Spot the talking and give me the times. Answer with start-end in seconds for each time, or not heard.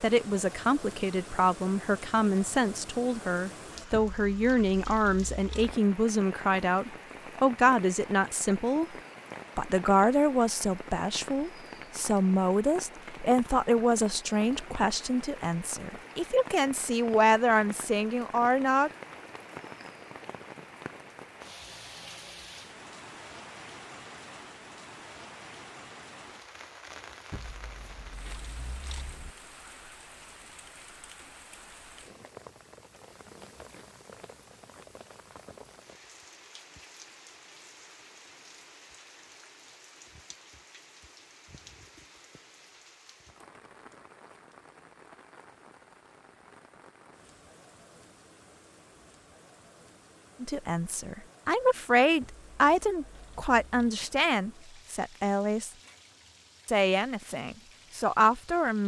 0.0-8.9, 9.6-18.9, 50.4-55.7, 56.6-58.8.